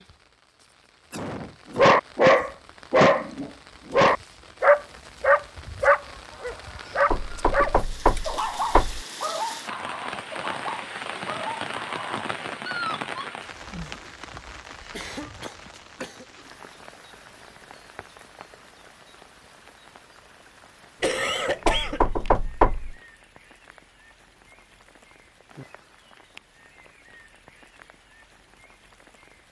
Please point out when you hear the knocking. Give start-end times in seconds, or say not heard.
7.1-9.1, 21.6-22.9.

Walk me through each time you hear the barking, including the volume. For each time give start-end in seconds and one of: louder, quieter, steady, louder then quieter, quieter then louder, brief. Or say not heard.
1.8-13.2 quieter.